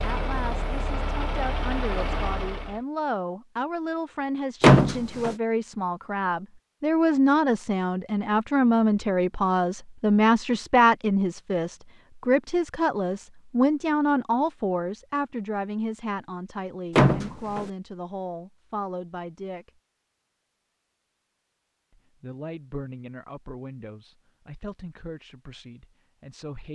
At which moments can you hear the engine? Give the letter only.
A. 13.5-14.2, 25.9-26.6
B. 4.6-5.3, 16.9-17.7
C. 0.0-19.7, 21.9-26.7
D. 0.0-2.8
D.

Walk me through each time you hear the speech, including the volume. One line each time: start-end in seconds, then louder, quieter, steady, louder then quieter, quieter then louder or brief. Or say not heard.
0.0-19.7 louder then quieter
21.9-26.7 quieter.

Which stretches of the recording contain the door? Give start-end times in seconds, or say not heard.
4.6-5.3, 16.9-17.7.